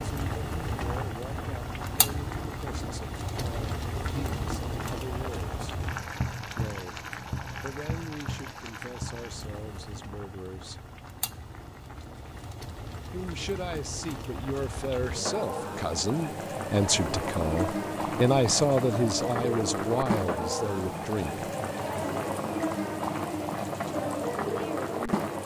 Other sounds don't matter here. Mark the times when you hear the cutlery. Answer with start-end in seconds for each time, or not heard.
not heard.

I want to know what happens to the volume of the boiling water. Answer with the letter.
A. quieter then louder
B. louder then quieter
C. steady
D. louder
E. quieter
A.